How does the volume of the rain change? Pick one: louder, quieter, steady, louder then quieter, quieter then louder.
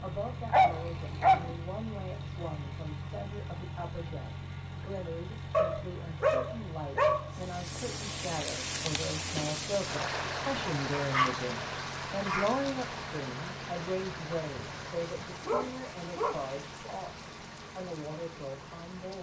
quieter.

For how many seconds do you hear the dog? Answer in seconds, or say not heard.
6 s.